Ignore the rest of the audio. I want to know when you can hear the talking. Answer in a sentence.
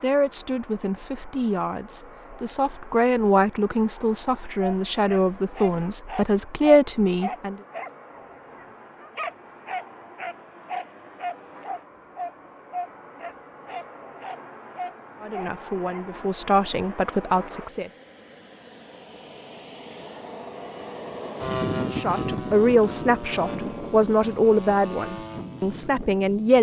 The talking can be heard from 0.0 to 7.5 s, from 15.2 to 17.9 s and from 21.9 to 26.5 s.